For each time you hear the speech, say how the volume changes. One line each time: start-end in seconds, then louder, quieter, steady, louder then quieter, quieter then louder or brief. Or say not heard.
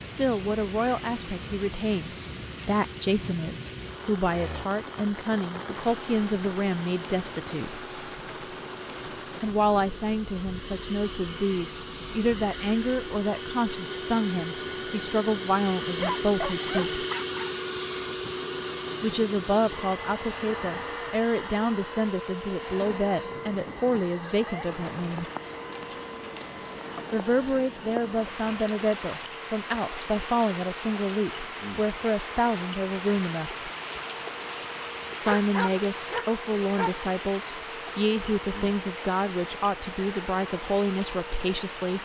0.0-7.7 steady
9.4-17.0 steady
19.0-25.2 steady
27.1-33.7 steady
35.2-42.0 steady.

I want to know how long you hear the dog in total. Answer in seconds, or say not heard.
3 s.